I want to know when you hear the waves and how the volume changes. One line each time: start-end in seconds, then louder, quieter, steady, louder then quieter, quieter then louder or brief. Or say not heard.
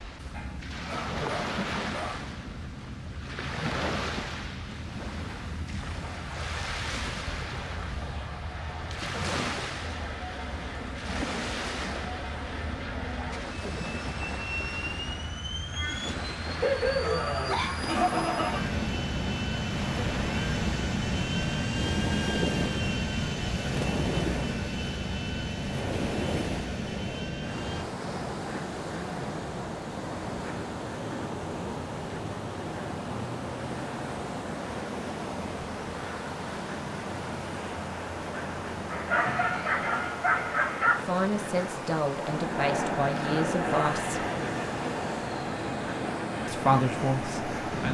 0.0-47.8 steady.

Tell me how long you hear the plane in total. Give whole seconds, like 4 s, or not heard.
33 s.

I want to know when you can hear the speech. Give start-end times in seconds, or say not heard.
41.0-44.2, 46.5-47.8.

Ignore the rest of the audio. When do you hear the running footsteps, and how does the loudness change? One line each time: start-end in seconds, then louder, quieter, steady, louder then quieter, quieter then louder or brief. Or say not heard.
not heard.